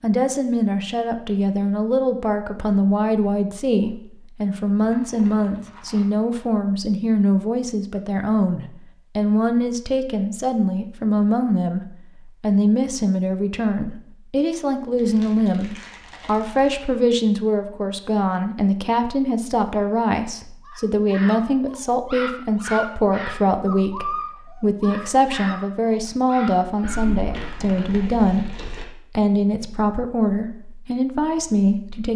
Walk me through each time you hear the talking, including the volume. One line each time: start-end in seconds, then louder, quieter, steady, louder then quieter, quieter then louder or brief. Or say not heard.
0.0-32.1 steady.